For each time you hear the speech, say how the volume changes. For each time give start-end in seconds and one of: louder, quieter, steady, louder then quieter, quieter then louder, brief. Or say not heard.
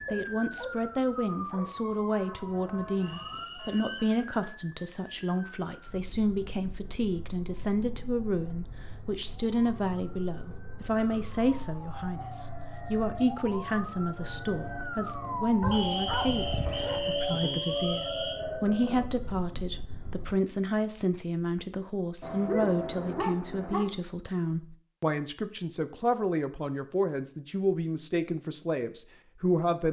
0.1-29.8 steady.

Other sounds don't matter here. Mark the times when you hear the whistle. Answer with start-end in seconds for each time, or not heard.
3.0-4.2, 15.7-18.4.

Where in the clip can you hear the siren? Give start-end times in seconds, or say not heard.
0.0-20.4.